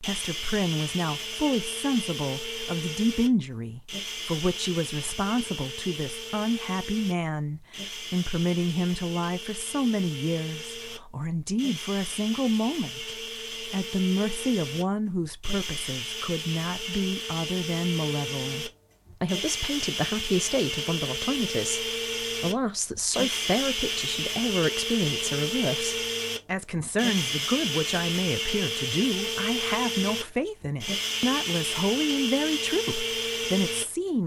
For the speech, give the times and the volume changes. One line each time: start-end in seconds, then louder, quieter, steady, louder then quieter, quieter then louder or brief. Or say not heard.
0.0-34.2 steady.